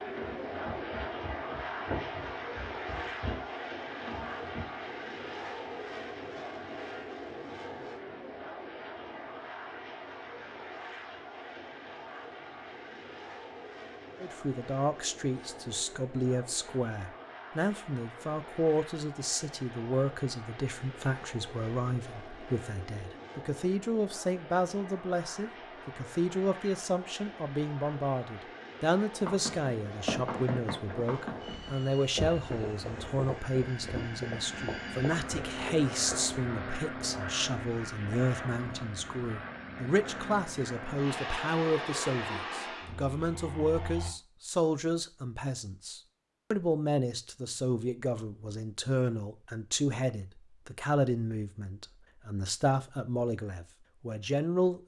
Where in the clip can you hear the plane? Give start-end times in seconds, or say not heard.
0.0-44.1.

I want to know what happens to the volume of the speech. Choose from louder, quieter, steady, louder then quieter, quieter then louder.
steady.